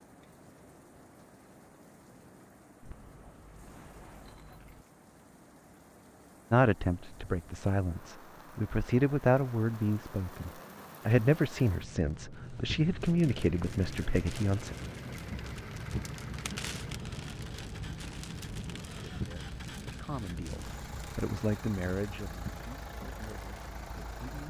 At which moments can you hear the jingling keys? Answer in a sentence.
The jingling keys can be heard from 2.8 to 4.8 s.